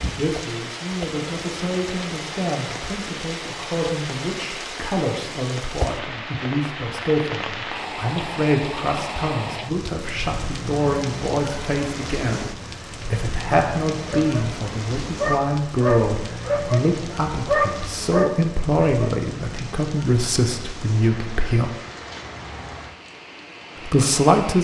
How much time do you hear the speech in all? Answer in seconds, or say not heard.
22 s.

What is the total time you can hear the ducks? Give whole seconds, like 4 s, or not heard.
not heard.